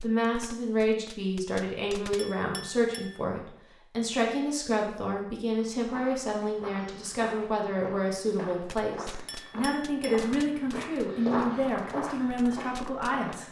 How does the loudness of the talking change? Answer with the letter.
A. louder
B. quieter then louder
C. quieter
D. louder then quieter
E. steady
E.